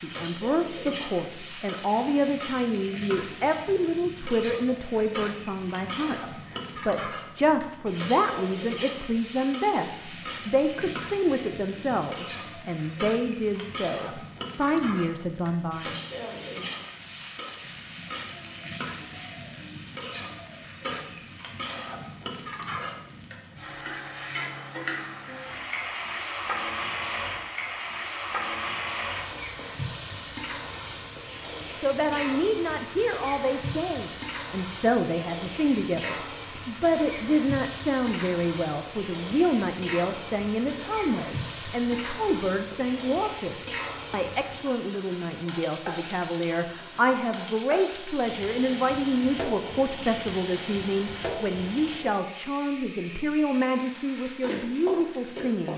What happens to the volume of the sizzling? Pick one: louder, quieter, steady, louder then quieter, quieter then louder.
steady.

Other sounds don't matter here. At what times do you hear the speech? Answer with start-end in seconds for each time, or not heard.
0.0-15.9, 31.8-55.7.